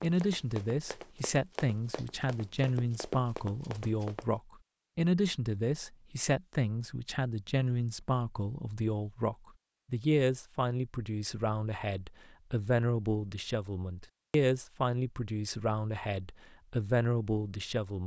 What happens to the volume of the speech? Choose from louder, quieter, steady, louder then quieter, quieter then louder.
steady.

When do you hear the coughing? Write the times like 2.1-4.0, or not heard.
not heard.